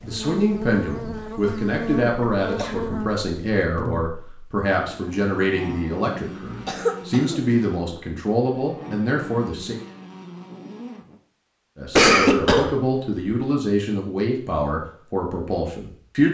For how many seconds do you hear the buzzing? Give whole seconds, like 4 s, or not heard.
11 s.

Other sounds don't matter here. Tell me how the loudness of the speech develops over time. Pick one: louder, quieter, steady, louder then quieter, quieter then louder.
steady.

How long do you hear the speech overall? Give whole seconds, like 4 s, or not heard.
14 s.